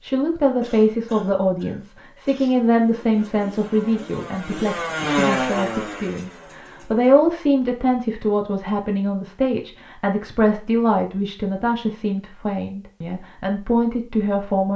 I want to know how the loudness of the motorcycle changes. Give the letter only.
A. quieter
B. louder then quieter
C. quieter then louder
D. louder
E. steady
B.